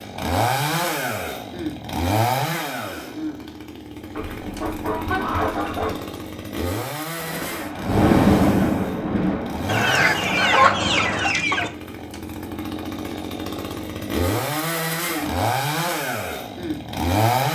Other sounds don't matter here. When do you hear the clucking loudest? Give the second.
11 s.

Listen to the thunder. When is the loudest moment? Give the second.
8 s.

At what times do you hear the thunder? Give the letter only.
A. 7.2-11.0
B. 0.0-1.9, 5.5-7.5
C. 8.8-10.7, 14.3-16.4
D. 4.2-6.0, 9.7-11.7
A.